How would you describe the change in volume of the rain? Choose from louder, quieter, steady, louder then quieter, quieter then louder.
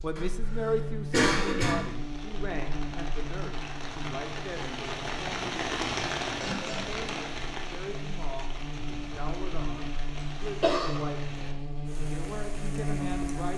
louder then quieter.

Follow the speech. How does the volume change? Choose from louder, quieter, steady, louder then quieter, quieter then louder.
quieter.